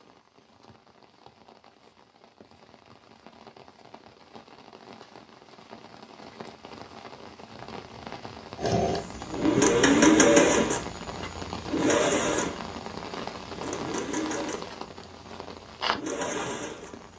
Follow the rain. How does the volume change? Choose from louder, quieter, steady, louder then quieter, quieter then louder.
louder.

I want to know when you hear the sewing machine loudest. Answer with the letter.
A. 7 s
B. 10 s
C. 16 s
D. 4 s
B.